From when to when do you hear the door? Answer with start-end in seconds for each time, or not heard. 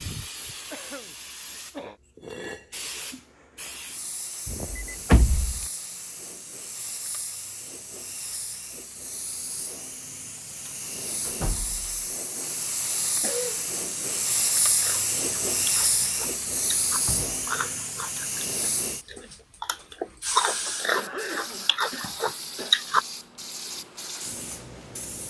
4.5-5.7, 11.2-12.1, 17.0-17.4.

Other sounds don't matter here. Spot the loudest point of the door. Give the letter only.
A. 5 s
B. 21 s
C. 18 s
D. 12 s
A.